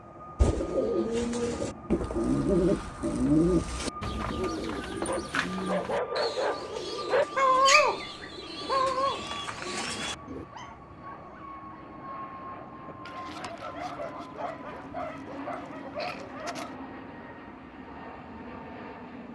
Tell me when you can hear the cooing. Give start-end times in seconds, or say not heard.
0.3-10.4.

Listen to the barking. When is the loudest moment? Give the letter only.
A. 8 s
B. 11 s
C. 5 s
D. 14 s
A.